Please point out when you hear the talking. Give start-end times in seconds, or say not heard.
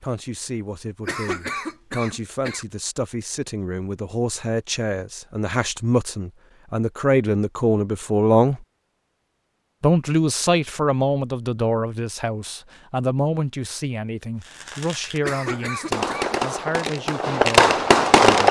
0.0-8.6, 9.8-18.4.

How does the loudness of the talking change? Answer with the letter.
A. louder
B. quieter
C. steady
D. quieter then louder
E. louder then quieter
E.